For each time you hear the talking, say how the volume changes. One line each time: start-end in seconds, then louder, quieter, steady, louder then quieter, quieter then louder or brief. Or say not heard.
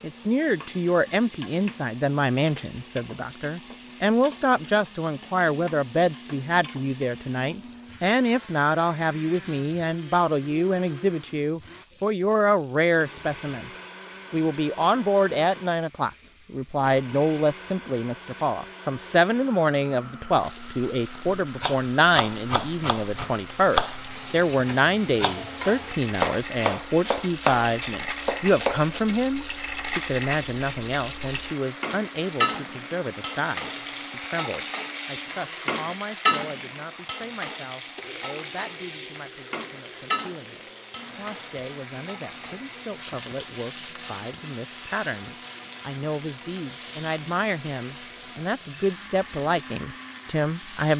0.0-13.7 steady
14.3-50.9 quieter then louder.